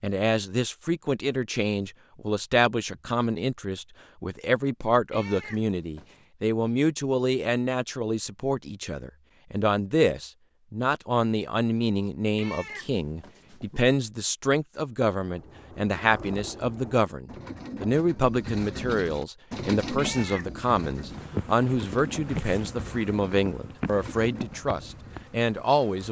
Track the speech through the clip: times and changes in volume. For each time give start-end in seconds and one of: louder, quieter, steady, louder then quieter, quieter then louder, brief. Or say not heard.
0.0-26.0 steady.